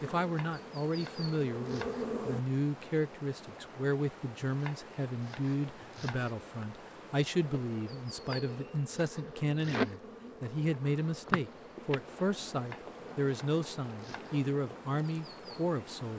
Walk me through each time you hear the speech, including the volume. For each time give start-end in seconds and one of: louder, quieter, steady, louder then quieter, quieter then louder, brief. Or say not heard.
0.0-16.1 steady.